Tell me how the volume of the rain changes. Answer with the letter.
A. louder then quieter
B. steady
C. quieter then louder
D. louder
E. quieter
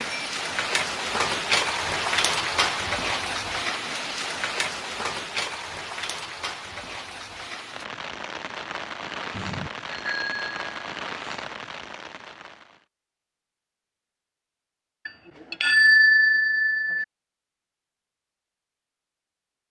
E.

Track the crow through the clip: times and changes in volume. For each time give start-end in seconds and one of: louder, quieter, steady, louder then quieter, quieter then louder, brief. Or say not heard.
not heard.